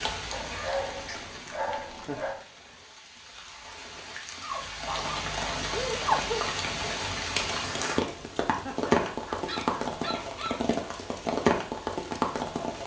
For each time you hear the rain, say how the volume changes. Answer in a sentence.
You can hear the rain from 0.0 to 12.8 s, getting louder.